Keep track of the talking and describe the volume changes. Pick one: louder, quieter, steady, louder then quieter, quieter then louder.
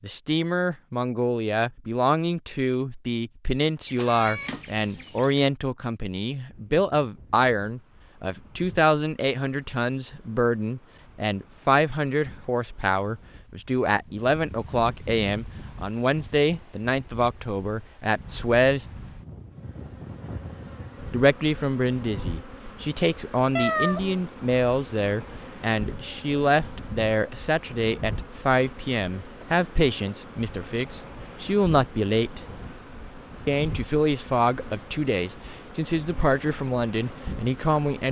steady.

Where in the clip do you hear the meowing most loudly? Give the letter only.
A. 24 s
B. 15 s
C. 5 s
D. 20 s
A.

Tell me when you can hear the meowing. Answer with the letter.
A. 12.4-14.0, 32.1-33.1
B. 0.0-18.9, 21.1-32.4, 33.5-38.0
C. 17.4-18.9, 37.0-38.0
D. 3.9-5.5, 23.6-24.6
D.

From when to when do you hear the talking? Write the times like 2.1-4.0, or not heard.
0.0-18.9, 21.1-32.4, 33.5-38.0.